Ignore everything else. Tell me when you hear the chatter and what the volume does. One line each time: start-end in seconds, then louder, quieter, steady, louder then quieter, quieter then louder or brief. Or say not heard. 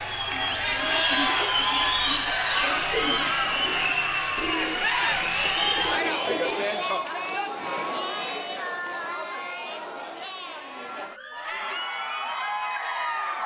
0.0-13.4 quieter.